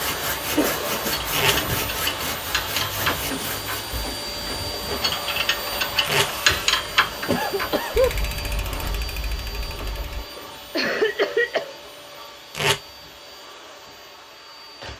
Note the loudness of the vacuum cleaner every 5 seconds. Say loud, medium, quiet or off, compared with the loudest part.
loud, loud, medium.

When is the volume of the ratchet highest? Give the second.
7 s.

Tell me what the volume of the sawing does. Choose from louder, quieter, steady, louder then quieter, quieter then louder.
steady.